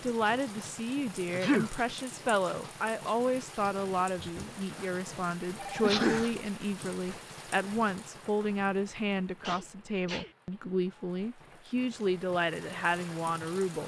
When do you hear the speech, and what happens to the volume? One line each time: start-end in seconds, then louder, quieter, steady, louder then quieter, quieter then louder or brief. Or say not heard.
0.0-13.8 steady.